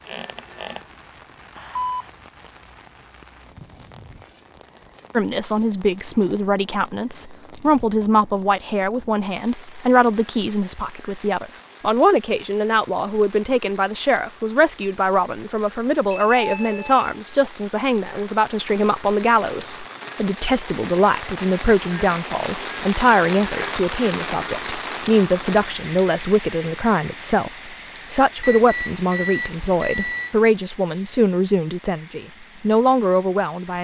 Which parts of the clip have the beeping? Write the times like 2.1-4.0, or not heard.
1.6-2.1, 16.1-17.1, 28.4-30.4.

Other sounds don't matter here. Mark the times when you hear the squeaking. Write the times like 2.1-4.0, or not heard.
0.1-0.9.